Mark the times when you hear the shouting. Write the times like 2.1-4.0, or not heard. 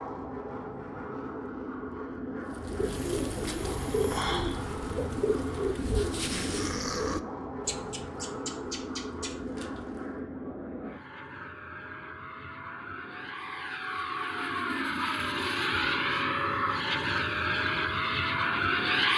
not heard.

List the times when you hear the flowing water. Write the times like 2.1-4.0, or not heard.
not heard.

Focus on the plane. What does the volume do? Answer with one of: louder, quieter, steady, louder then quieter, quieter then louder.
louder.